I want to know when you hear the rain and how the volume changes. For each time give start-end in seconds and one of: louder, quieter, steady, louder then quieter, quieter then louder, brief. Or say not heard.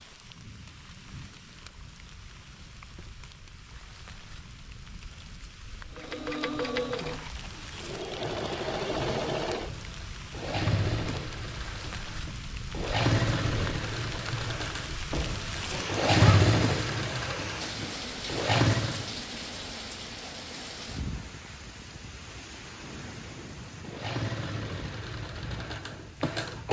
0.0-26.6 louder then quieter.